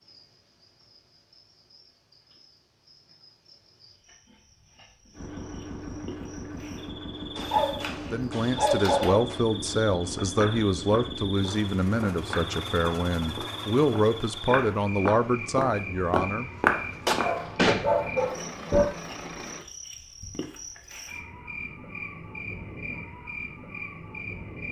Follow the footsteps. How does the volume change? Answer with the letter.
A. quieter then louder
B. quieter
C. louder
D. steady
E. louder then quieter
C.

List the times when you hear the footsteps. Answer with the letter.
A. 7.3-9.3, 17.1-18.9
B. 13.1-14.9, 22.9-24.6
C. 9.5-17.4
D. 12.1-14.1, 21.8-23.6
C.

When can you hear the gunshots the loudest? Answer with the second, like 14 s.
18 s.